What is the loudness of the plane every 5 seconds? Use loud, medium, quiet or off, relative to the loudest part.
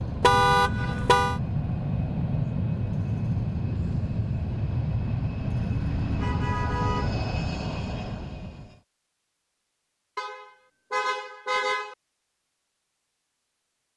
loud, loud, off.